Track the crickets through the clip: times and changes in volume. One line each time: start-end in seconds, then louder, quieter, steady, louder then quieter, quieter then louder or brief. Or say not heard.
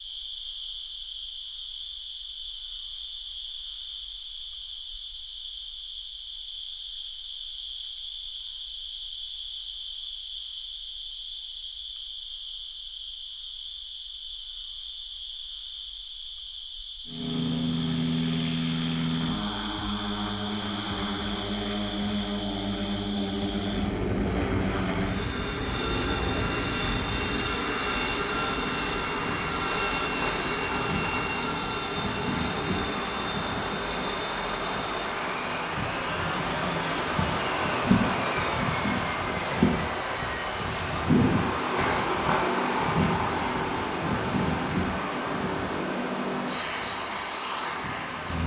0.0-48.4 louder.